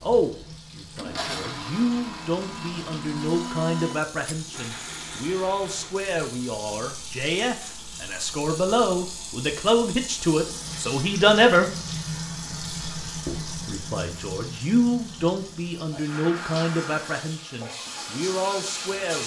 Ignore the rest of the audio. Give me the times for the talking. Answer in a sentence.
You can hear the talking from 0.0 to 11.7 s and from 13.2 to 19.2 s.